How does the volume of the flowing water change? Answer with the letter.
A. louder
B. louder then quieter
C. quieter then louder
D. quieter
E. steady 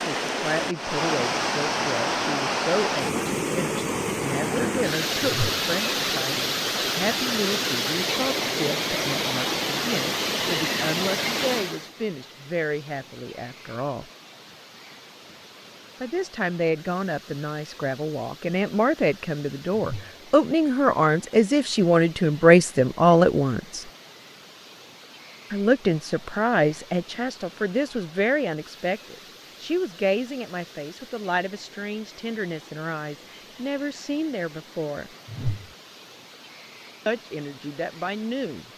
D.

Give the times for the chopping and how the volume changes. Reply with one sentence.
You can't hear the chopping here.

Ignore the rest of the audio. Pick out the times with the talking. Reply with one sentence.
You can hear the talking from 0.0 to 14.1 s, from 16.0 to 23.9 s, from 25.5 to 35.1 s and from 37.0 to 38.6 s.